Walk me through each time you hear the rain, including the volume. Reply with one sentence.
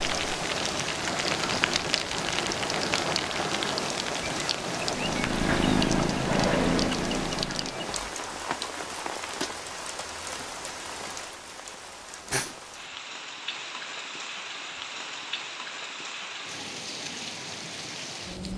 The rain can be heard from 0.0 to 18.5 s, getting quieter.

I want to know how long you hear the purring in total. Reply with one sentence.
The purring can be heard for 3 seconds in total.